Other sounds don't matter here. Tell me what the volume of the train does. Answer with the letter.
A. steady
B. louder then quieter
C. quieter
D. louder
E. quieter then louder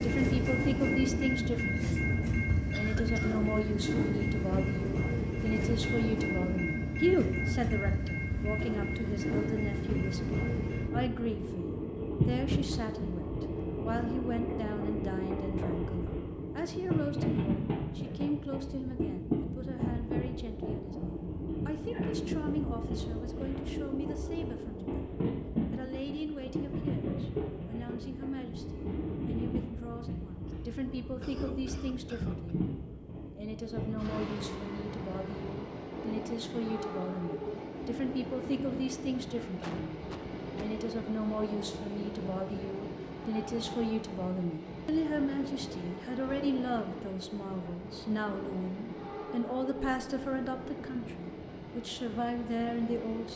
C.